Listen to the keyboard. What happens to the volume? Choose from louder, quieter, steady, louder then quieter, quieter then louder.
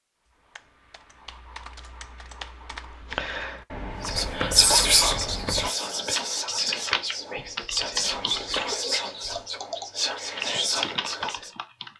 louder.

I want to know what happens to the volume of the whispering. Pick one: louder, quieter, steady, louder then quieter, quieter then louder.
quieter.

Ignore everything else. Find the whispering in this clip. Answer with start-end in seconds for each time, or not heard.
4.0-11.5.